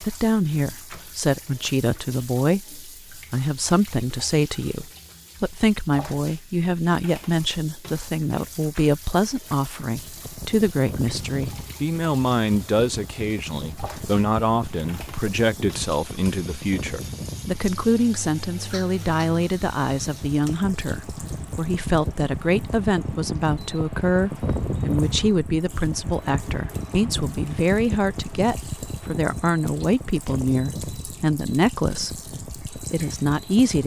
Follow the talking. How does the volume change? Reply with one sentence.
The loudness of the talking stays about the same.